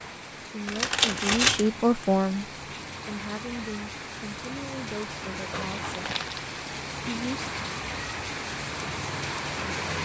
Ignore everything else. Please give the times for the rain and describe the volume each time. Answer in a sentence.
You can hear the rain from 0.0 to 9.9 s, getting louder.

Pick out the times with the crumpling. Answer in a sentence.
You can hear the crumpling from 0.7 to 1.7 s and from 5.5 to 6.5 s.